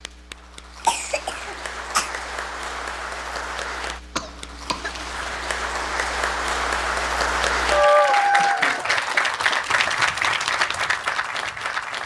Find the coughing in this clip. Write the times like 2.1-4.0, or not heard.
0.8-2.1, 4.2-5.0, 8.3-8.8.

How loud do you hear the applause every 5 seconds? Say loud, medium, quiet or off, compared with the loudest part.
quiet, loud, loud.